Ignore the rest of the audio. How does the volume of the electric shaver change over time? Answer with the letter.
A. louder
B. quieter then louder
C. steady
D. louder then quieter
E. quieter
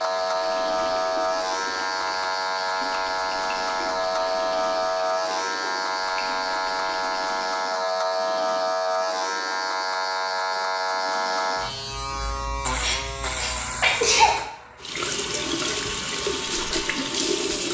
E.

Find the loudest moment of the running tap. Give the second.
17 s.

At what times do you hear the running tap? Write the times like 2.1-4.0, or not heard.
0.0-7.6, 14.8-17.7.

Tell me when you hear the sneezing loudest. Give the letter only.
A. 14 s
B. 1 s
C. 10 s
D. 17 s
A.